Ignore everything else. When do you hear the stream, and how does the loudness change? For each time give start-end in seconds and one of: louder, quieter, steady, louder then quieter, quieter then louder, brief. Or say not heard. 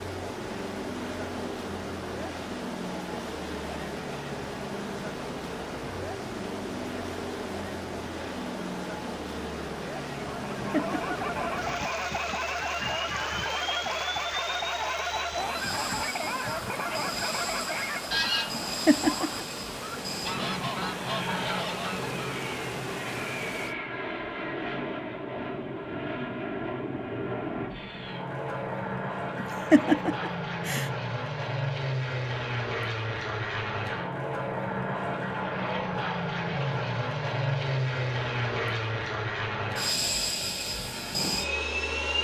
0.0-23.8 steady.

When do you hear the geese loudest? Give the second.
18 s.